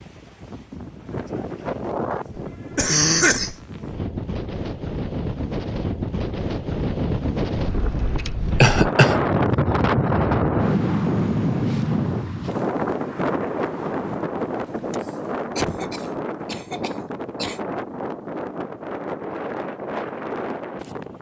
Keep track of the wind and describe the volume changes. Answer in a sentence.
The volume of the wind goes up, then down.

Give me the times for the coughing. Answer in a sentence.
You can hear the coughing from 2.4 to 3.5 s, from 8.6 to 9.2 s and from 14.9 to 17.6 s.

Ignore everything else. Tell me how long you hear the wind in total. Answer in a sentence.
You can hear the wind for 21 seconds altogether.